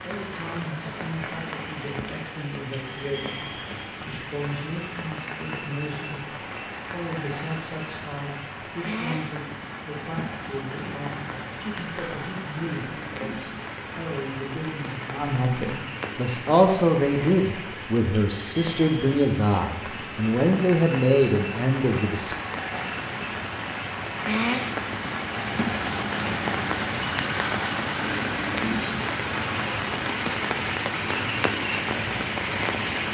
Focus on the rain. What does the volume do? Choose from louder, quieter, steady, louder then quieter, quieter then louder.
louder.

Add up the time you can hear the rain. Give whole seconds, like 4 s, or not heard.
33 s.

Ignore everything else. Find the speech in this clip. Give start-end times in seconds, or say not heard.
0.0-22.4.